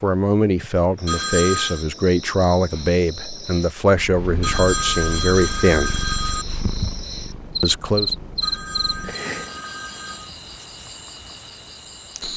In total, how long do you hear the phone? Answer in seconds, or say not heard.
5 s.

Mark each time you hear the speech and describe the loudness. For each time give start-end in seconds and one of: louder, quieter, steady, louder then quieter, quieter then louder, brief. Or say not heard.
0.0-6.0 steady
7.6-8.1 brief.